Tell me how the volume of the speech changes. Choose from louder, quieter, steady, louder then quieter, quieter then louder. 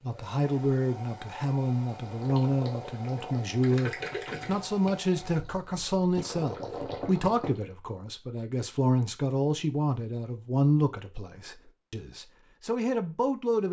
steady.